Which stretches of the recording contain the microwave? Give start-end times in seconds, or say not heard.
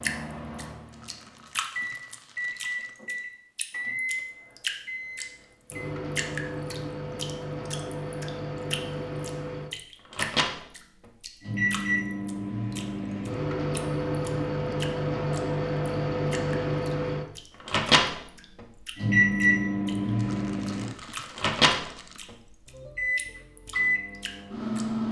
0.0-25.0.